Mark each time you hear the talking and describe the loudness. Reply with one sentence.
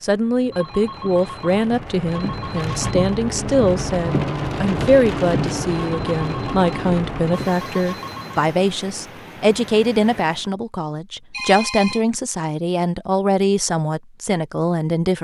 You can hear the talking from 0.0 to 15.1 s, at a steady volume.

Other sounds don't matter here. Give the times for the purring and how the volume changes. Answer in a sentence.
The purring can't be heard in this clip.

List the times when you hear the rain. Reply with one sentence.
You can hear the rain from 0.0 to 10.5 s.